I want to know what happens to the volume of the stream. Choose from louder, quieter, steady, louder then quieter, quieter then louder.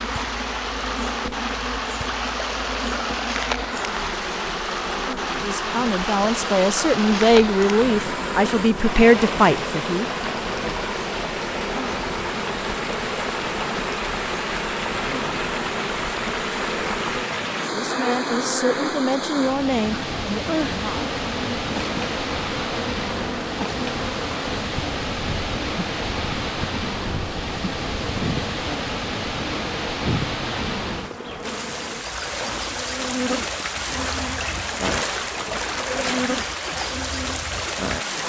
steady.